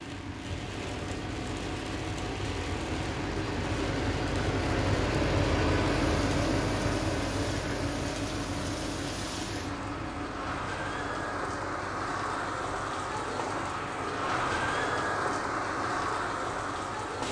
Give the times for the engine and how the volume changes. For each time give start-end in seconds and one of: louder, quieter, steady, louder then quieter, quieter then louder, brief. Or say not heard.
0.0-17.2 louder then quieter.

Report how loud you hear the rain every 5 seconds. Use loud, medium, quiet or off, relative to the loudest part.
medium, medium, loud, loud.